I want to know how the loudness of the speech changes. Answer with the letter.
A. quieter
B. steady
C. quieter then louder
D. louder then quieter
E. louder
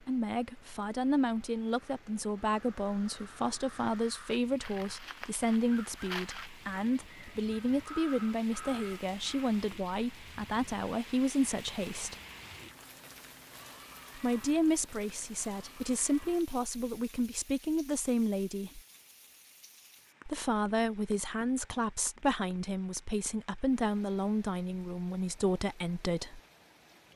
B.